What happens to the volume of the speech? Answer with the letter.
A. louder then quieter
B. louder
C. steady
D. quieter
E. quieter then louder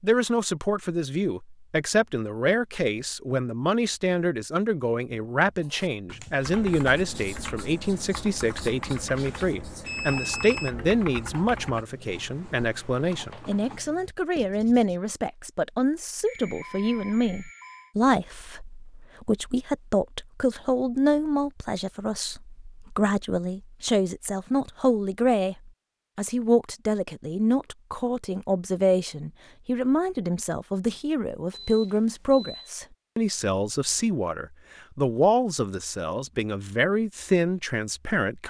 C.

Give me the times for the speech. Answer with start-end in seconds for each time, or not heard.
0.0-38.4.